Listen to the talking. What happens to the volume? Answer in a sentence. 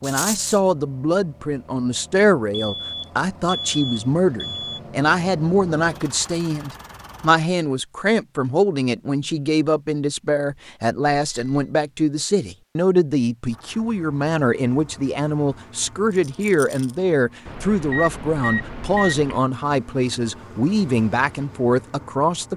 The loudness of the talking stays about the same.